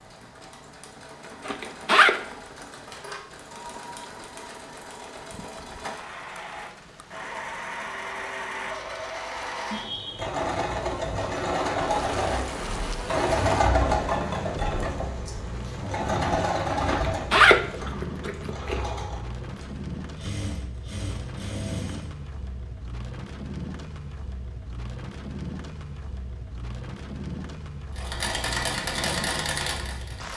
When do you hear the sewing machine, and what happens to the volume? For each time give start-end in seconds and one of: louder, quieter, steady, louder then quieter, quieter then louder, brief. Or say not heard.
0.0-22.2 louder then quieter
27.9-30.3 brief.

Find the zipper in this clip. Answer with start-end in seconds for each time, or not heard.
1.4-2.1, 16.9-18.8.